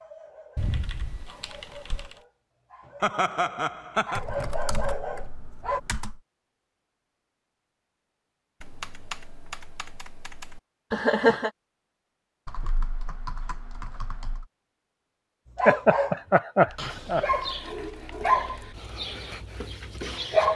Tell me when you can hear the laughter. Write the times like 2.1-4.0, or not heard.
3.0-4.2, 10.9-11.5, 15.7-17.2.